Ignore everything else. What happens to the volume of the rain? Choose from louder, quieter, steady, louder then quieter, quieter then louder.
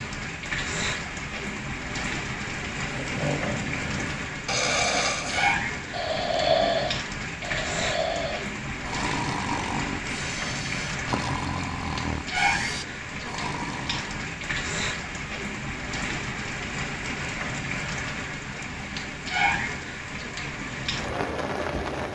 steady.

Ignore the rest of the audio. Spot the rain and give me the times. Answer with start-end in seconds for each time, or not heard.
0.0-22.1.